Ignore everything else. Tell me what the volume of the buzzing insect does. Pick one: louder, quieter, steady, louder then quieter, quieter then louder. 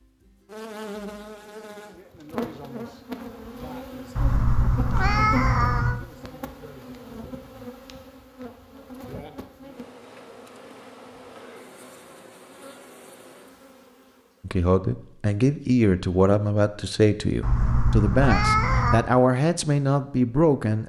quieter.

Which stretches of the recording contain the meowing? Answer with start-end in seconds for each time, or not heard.
4.2-6.0, 17.4-19.0.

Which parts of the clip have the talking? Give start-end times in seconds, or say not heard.
14.4-20.8.